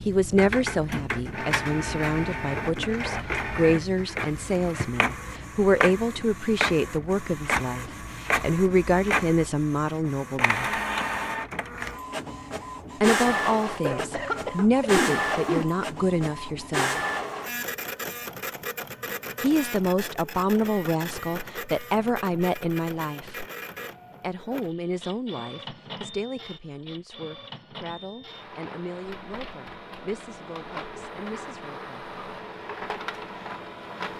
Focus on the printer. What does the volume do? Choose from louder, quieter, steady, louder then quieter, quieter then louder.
quieter.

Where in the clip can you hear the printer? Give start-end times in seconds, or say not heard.
0.0-34.1.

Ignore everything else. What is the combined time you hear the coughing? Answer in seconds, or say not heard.
2 s.